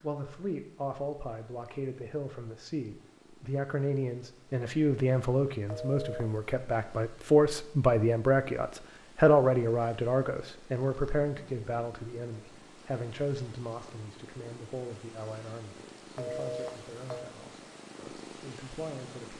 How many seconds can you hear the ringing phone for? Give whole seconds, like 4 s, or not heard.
2 s.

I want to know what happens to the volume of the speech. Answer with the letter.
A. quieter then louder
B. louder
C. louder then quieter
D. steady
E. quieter
C.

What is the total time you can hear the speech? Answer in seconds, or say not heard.
19 s.